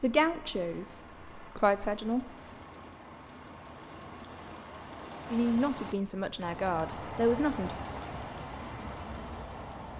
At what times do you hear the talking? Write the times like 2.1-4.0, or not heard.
0.0-2.2, 5.3-7.8.